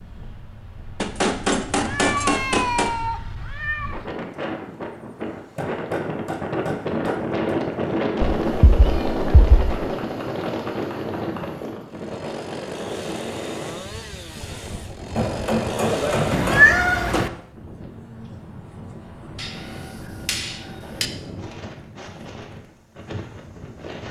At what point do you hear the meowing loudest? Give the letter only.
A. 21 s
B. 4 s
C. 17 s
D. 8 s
C.